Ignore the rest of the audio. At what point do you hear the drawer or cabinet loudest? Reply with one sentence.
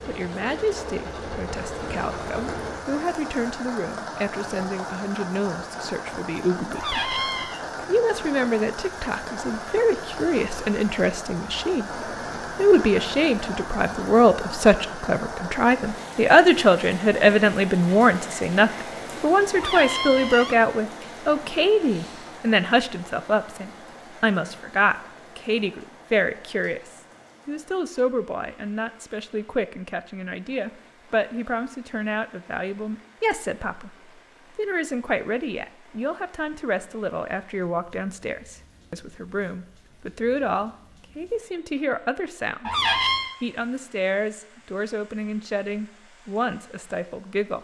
The volume of the drawer or cabinet peaks at 43 seconds.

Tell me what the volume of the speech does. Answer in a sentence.
The volume of the speech goes up, then down.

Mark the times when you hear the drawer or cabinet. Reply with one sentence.
You can hear the drawer or cabinet from 6.7 to 7.6 s, from 19.5 to 20.6 s and from 42.6 to 43.3 s.